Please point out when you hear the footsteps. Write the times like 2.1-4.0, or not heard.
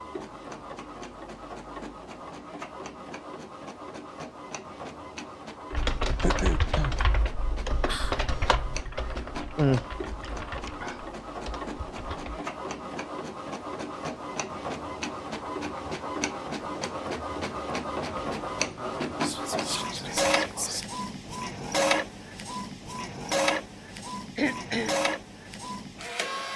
not heard.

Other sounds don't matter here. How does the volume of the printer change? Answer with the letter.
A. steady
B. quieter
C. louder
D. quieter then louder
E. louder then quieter
C.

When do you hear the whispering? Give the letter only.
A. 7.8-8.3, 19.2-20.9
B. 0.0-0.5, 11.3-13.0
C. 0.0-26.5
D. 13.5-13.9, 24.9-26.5
A.